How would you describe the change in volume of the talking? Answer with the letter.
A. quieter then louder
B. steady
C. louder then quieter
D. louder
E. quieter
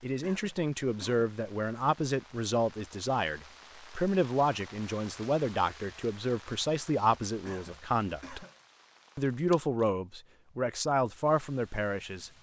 B.